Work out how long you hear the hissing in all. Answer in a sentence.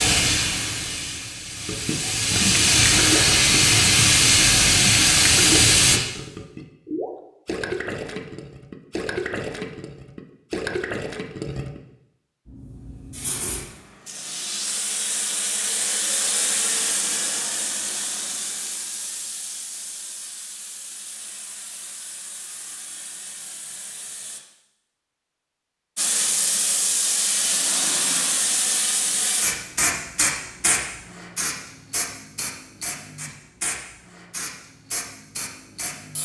The hissing can be heard for 28 seconds in total.